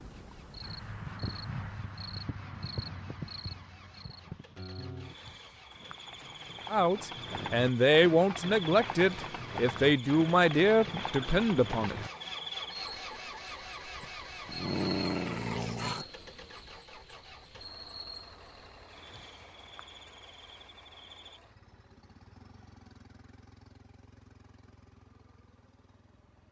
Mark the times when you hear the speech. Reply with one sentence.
You can hear the speech from 6.7 to 12.0 s.